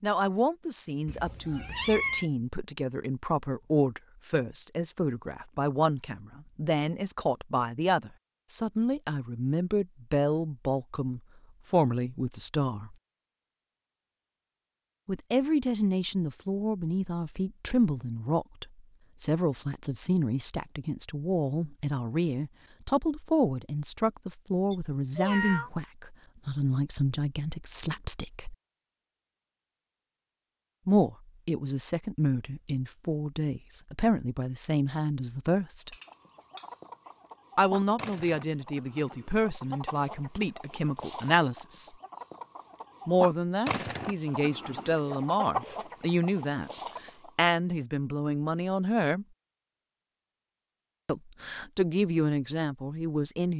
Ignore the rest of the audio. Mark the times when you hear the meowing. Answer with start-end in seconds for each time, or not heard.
1.1-2.3, 24.7-25.7, 35.9-36.6.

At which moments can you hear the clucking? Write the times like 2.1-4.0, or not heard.
36.0-47.3.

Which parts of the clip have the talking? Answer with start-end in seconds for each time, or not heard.
0.0-12.9, 15.1-28.6, 30.9-36.0, 37.5-42.0, 43.0-49.2, 51.0-53.5.